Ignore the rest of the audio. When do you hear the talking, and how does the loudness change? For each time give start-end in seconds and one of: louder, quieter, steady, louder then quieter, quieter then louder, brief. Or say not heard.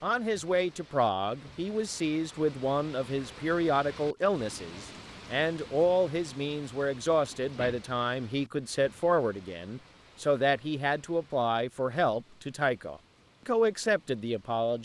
0.0-14.8 steady.